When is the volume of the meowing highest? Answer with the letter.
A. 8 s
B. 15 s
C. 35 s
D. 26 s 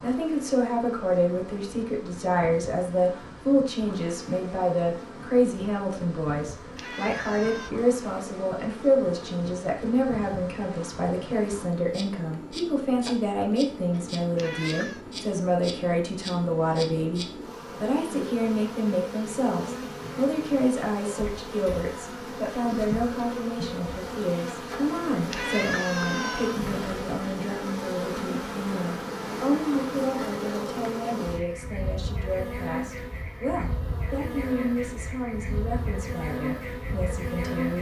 D.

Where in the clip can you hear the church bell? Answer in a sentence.
You can't hear the church bell here.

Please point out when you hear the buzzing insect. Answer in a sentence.
You can hear the buzzing insect from 0.0 to 37.7 s.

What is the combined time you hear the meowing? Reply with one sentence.
The meowing can be heard for 3 seconds in total.